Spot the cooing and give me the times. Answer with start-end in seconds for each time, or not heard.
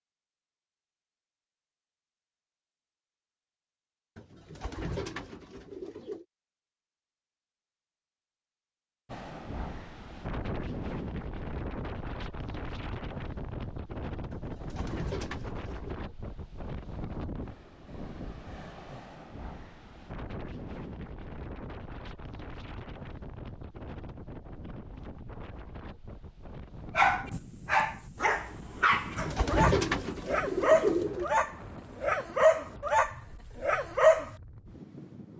4.2-6.2, 14.3-16.1, 28.9-31.3.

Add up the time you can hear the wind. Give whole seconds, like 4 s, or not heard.
26 s.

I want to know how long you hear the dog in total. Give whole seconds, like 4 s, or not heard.
7 s.